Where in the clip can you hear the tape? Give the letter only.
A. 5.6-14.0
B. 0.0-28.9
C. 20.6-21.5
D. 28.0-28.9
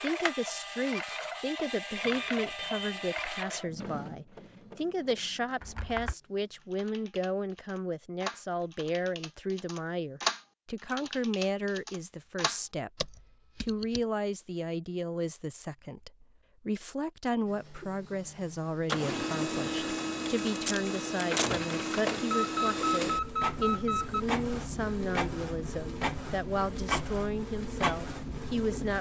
C.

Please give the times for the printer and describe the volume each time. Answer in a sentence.
The printer can be heard from 0.0 to 6.8 s, getting quieter; and from 17.4 to 28.9 s, at a steady volume.